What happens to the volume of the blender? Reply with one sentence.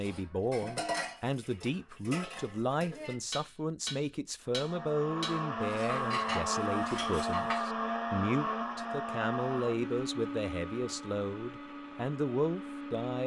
The volume of the blender goes down.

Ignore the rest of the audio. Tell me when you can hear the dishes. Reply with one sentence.
The dishes can be heard from 0.0 to 7.6 s.